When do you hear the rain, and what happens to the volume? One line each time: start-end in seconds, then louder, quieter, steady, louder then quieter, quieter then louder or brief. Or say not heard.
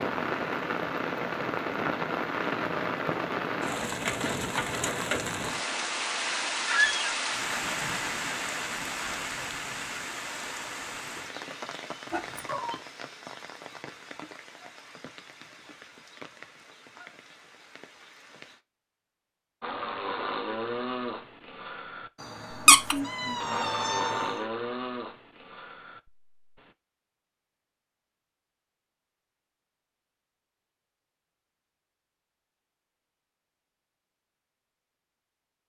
0.0-18.6 quieter.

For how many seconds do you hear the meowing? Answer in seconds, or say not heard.
3 s.